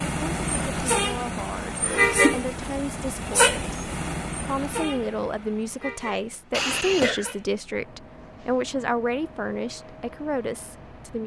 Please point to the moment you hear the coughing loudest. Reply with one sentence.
The loudest moment of the coughing is at 7 seconds.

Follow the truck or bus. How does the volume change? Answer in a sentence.
The loudness of the truck or bus goes down.